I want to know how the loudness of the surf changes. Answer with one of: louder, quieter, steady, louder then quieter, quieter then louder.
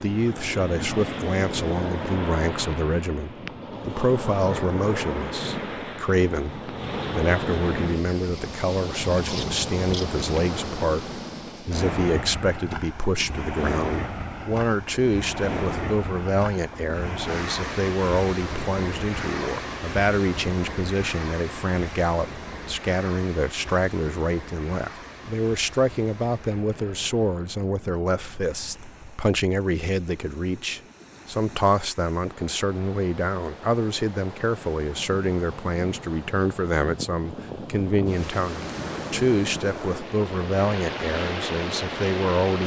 quieter then louder.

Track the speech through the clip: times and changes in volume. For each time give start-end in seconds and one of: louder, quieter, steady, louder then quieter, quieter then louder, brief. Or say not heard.
0.0-42.6 steady.